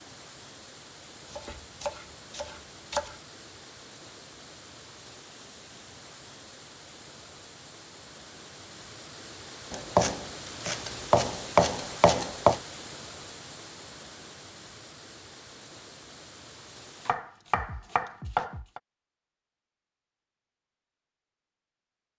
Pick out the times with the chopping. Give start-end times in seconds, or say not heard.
1.2-3.2, 9.7-12.6, 17.1-18.8.